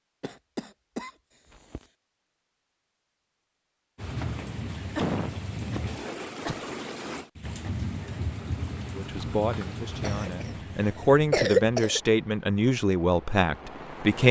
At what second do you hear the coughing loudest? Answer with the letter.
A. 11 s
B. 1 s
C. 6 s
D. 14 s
A.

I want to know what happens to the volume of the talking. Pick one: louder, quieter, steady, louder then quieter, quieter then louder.
louder.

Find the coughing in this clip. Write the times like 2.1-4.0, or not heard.
0.2-1.8, 5.0-6.7, 10.0-12.0.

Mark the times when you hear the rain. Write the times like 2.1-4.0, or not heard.
4.0-14.2.